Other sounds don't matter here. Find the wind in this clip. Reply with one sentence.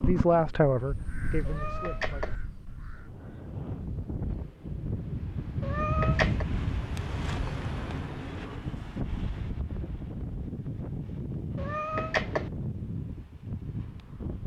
You can hear the wind from 2.9 to 14.4 s.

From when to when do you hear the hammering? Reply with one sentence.
The hammering can't be heard in this clip.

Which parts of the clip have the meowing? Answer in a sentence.
You can hear the meowing from 1.4 to 2.4 s, from 5.6 to 6.5 s and from 11.6 to 12.5 s.